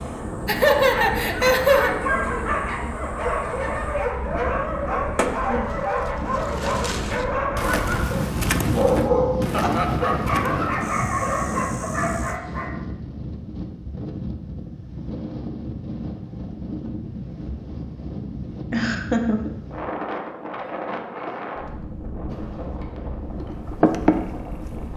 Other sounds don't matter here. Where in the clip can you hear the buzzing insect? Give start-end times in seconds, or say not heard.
0.0-12.4, 22.3-24.9.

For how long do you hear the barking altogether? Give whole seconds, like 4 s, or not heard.
12 s.